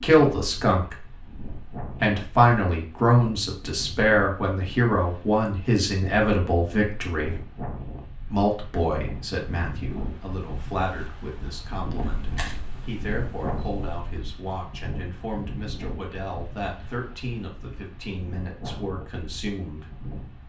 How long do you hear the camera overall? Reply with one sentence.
You can hear the camera for 2 seconds altogether.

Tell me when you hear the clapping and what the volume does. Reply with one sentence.
The clapping can't be heard in this clip.